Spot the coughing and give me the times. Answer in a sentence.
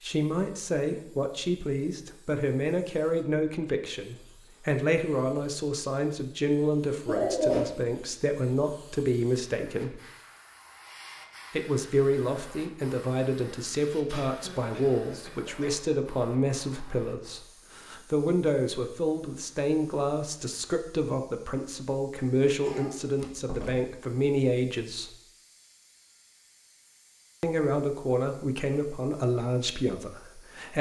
You can hear the coughing from 7.0 to 7.7 s, from 14.1 to 15.8 s and from 22.6 to 23.1 s.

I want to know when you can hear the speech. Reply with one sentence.
You can hear the speech from 0.0 to 10.0 s, from 11.5 to 25.1 s and from 27.4 to 30.7 s.